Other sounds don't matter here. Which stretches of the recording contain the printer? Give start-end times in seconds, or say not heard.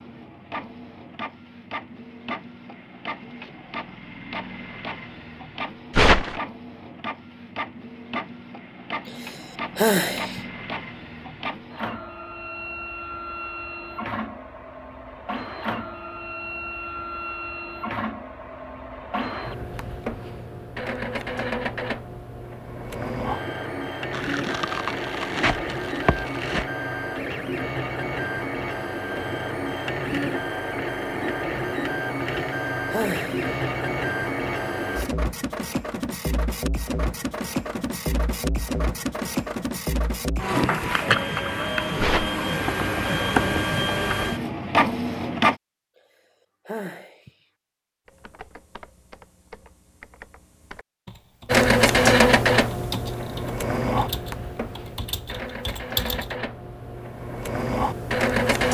0.0-45.5, 51.5-58.6.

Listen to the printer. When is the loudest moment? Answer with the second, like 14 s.
52 s.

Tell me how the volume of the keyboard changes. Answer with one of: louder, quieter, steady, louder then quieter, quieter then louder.
louder.